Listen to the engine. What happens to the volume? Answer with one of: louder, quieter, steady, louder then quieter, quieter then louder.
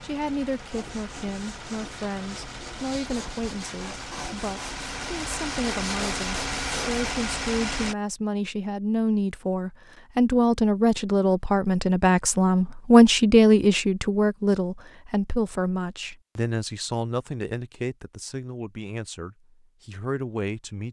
louder.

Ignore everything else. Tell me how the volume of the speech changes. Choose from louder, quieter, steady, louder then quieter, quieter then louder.
louder then quieter.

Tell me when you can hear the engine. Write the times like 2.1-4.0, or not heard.
0.0-8.0.